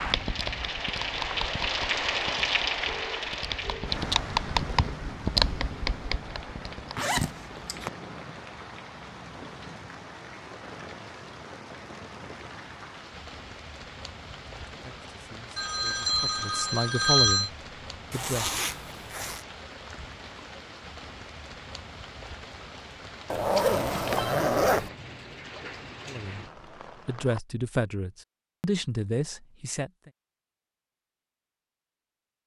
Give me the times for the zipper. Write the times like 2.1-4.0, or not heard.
7.0-7.9, 18.1-19.4, 23.3-24.9.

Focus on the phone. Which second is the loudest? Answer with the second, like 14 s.
17 s.